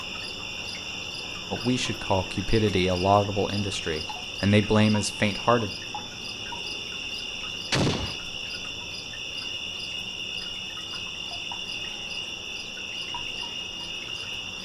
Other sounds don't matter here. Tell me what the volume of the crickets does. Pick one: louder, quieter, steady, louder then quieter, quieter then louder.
steady.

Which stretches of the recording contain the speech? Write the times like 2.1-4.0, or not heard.
1.5-5.7.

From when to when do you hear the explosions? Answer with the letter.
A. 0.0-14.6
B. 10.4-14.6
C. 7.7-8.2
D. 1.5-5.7
C.